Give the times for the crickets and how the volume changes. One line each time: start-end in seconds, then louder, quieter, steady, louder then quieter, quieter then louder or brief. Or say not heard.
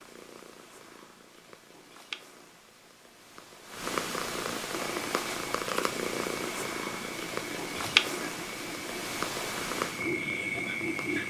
5.0-11.2 louder.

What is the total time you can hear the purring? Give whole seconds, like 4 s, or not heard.
11 s.